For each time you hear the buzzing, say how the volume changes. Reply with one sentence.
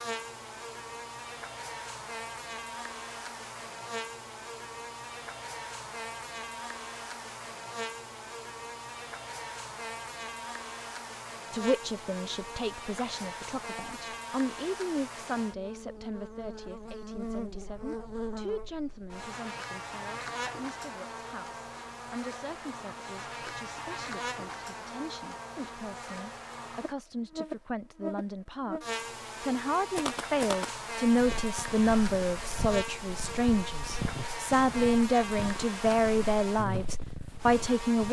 You can hear the buzzing from 0.0 to 38.0 s, at a steady volume.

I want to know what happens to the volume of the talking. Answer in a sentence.
The loudness of the talking goes down, then up.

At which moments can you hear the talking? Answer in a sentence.
You can hear the talking from 11.5 to 38.0 s.